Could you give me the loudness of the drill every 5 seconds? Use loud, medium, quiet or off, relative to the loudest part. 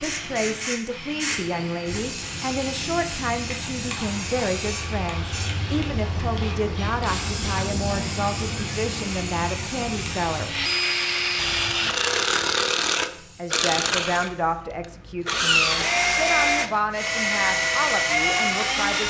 quiet, quiet, loud, loud.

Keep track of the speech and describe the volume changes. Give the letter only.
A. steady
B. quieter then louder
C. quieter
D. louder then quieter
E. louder
A.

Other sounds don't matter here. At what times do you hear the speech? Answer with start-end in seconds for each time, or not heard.
0.0-10.7, 13.3-19.0.